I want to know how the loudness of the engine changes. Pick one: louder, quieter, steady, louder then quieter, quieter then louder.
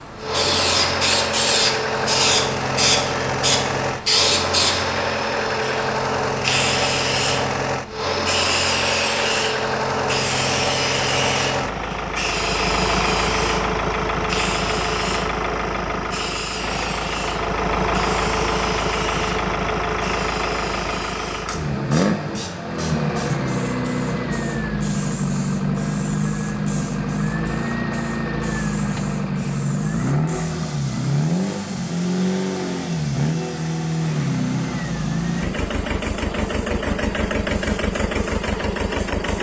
steady.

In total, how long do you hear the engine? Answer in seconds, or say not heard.
39 s.